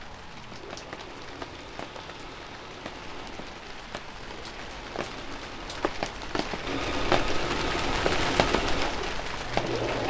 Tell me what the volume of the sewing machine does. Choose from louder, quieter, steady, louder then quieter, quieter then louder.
louder.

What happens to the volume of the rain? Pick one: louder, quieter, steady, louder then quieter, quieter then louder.
louder.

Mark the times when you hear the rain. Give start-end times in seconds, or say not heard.
0.0-10.0.